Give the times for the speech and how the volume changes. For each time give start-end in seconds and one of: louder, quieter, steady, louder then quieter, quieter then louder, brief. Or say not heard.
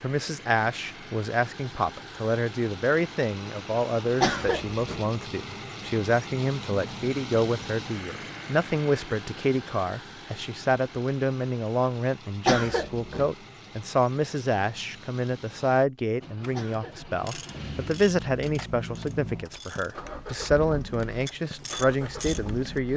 0.0-22.9 steady.